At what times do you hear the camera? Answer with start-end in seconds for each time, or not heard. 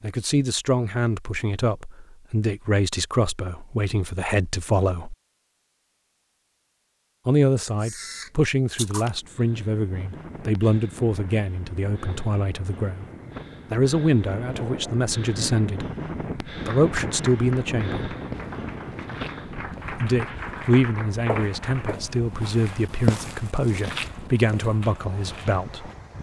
7.6-9.1.